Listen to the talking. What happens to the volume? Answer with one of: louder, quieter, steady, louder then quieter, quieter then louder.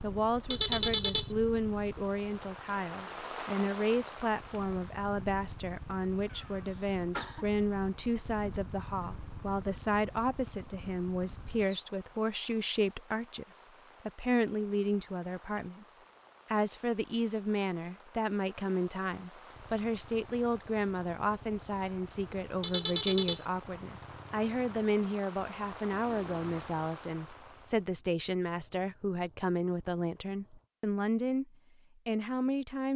steady.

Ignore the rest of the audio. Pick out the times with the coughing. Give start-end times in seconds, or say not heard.
6.2-7.5.